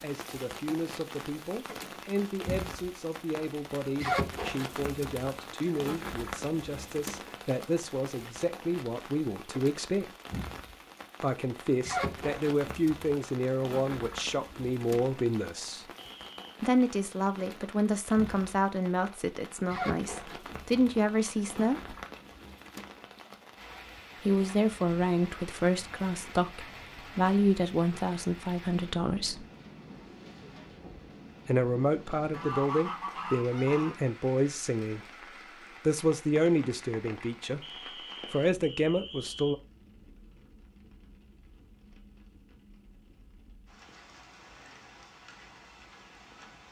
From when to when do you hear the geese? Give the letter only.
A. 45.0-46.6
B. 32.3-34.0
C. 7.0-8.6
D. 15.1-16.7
B.